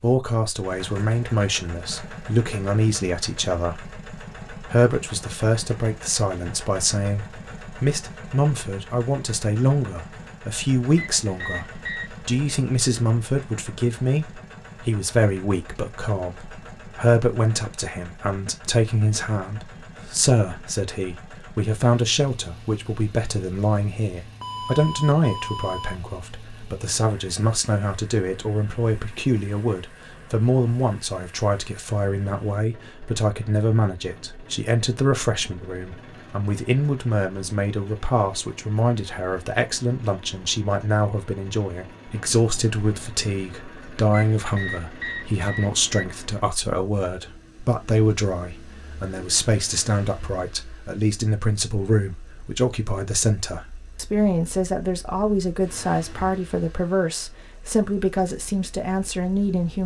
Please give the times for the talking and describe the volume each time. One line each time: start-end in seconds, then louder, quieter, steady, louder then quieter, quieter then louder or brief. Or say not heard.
0.0-59.8 steady.